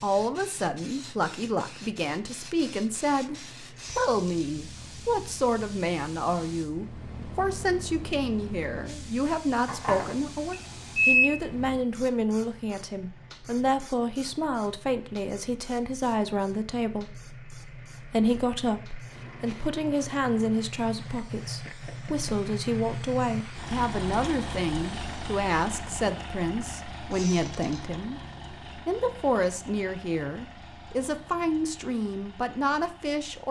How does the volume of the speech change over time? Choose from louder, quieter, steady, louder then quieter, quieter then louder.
steady.